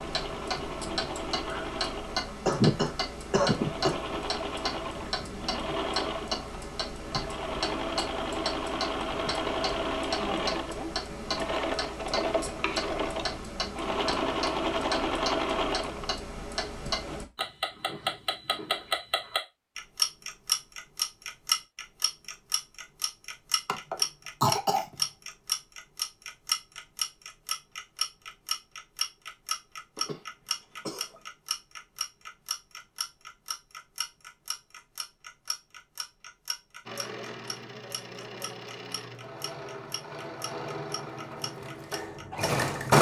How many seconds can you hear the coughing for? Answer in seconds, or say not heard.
4 s.